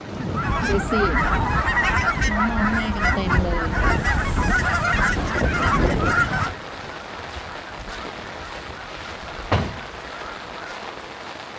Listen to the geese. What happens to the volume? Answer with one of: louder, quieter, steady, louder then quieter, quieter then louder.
quieter.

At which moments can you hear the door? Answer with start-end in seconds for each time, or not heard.
8.8-9.8.